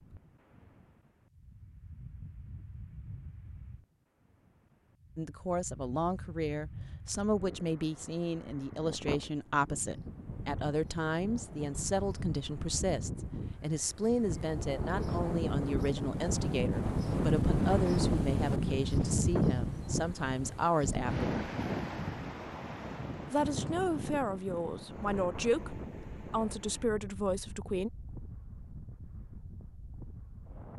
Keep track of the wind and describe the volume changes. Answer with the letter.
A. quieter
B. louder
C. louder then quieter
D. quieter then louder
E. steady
C.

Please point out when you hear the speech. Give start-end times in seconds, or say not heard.
5.2-21.4, 23.3-27.9.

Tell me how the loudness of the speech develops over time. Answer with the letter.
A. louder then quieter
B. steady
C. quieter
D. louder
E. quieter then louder
B.